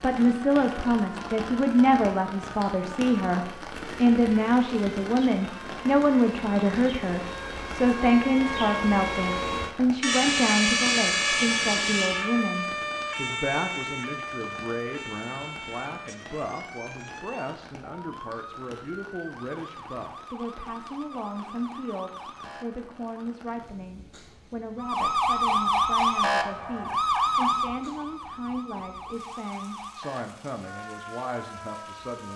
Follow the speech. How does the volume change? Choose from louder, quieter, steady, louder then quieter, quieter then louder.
quieter.